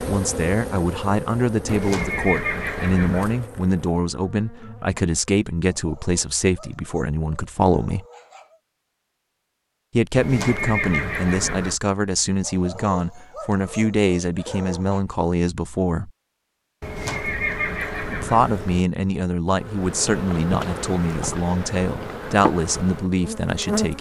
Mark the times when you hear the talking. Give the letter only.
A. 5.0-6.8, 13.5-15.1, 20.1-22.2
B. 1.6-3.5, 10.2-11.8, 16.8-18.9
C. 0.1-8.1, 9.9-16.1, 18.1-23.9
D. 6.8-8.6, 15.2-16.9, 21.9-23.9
C.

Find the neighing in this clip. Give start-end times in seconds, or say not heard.
1.6-3.5, 10.2-11.8, 16.8-18.9.